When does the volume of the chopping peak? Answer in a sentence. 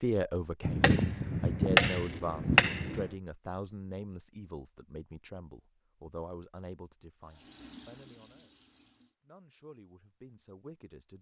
The volume of the chopping peaks at 2 seconds.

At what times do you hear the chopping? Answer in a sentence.
You can hear the chopping from 0.6 to 3.0 s.